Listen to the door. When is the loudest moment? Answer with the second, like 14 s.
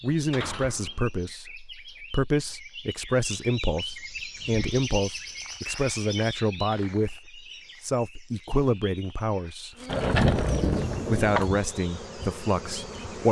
10 s.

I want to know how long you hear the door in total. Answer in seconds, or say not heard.
3 s.